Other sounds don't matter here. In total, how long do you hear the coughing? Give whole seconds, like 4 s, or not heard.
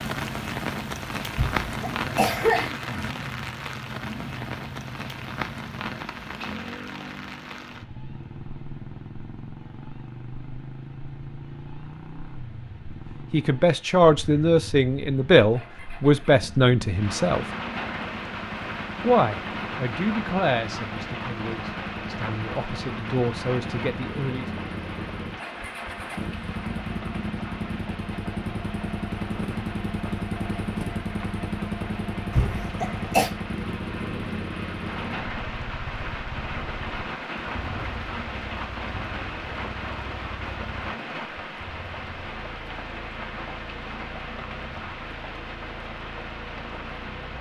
3 s.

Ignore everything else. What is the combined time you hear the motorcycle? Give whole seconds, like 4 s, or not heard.
47 s.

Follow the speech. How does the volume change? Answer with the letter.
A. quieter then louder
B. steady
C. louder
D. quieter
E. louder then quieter
A.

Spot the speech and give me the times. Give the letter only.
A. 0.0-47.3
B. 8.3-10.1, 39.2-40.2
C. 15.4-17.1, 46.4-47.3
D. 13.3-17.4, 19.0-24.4
D.